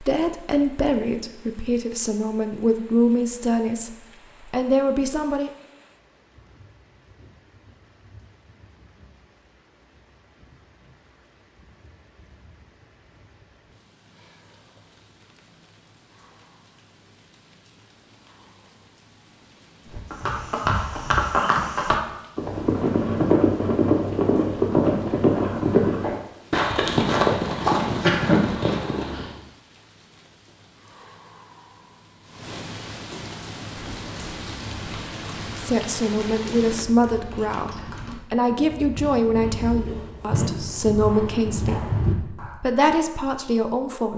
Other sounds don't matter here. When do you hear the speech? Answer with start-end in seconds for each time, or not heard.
0.0-5.5, 35.5-44.1.